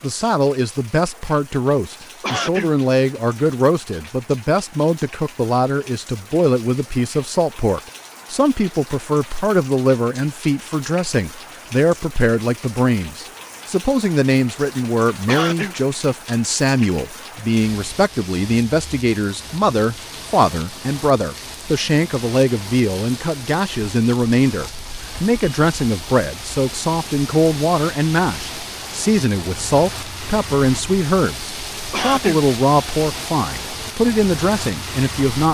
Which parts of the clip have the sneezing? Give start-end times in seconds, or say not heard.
2.2-2.8, 15.2-15.8, 31.9-32.4.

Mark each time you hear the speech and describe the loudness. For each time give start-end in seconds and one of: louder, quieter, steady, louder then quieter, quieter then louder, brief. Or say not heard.
0.0-35.4 steady.